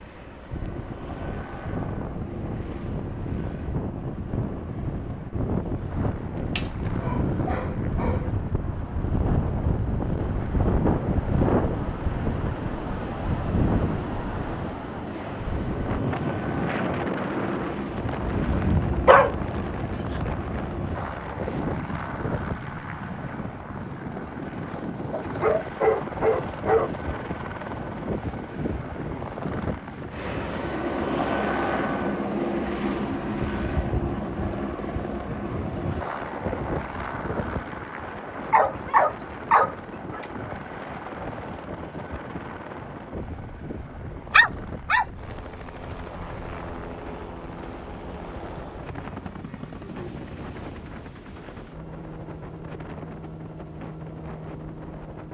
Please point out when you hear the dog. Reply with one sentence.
The dog can be heard from 6.3 to 8.3 s, from 18.3 to 20.3 s, from 25.1 to 27.2 s, from 38.4 to 40.2 s and from 44.3 to 45.0 s.